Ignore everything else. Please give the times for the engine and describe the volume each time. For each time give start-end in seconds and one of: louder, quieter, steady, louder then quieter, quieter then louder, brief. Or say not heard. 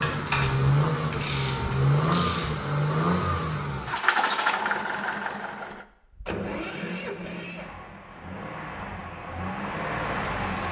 0.0-10.6 quieter.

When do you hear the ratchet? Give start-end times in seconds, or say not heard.
0.0-2.5.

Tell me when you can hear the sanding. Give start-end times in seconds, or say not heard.
not heard.